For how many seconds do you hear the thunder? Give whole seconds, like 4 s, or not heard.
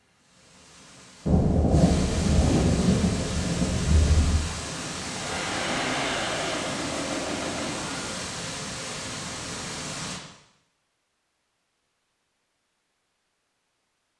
3 s.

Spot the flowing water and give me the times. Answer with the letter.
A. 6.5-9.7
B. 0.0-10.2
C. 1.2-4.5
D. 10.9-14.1
B.